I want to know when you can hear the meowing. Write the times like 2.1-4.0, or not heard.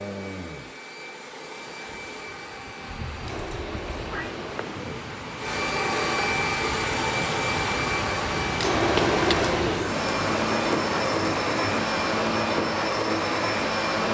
2.9-4.4, 8.9-9.3.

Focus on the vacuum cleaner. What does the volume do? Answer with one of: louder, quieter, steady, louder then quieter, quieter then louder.
louder.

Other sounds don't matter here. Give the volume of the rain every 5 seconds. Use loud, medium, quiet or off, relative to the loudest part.
medium, loud, loud.